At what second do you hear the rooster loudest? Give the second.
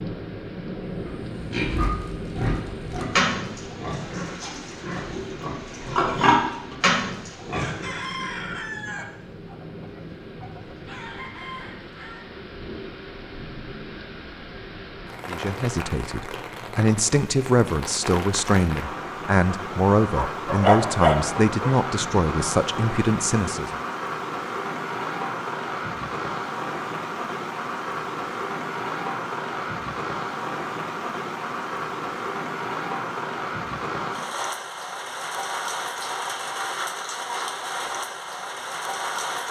8 s.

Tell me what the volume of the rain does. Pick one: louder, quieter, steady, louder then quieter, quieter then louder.
louder.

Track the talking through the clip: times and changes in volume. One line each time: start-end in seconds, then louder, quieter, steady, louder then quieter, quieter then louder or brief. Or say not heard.
15.2-23.8 steady.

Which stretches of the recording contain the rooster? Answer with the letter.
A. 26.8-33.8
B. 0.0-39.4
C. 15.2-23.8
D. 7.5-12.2
D.